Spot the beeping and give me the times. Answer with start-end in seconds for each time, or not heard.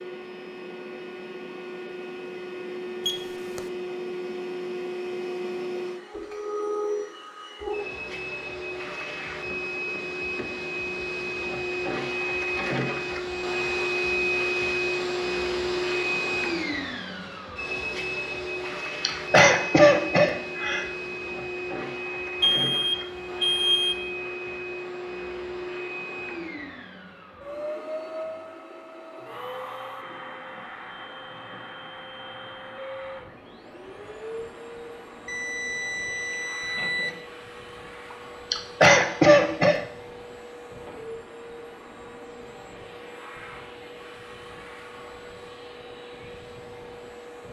3.0-3.6, 22.4-24.1, 35.2-37.2.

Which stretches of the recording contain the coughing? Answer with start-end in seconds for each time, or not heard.
19.1-20.9, 38.5-39.8.